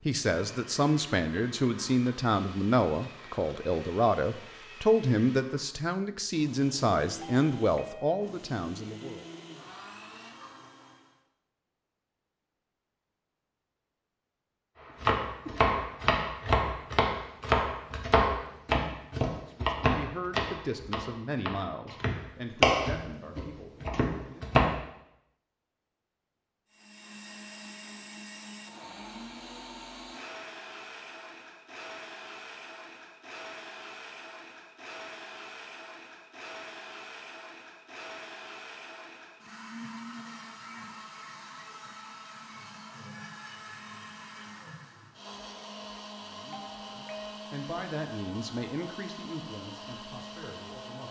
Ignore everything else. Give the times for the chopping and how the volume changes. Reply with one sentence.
The chopping can be heard from 15.0 to 24.8 s, getting quieter then louder.